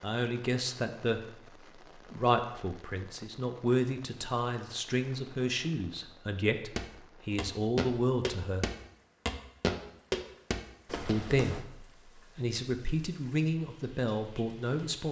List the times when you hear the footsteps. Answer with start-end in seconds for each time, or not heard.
6.8-11.7.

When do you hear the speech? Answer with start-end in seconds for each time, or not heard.
0.0-1.2, 1.9-8.7, 11.1-15.0.